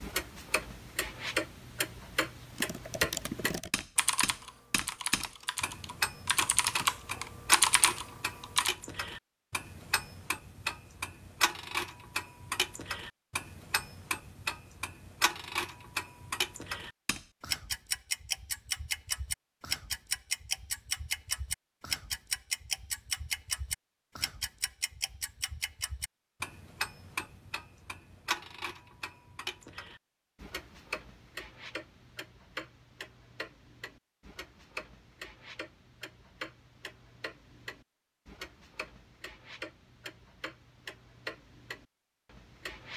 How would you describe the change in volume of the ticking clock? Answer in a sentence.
The loudness of the ticking clock goes down.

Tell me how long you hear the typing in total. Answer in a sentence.
You can hear the typing for 6 seconds altogether.